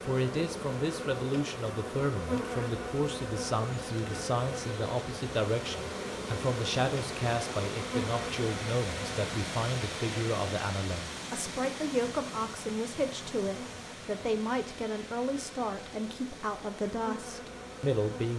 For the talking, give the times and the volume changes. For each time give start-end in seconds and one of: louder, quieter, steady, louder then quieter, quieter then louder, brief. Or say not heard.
0.0-18.3 steady.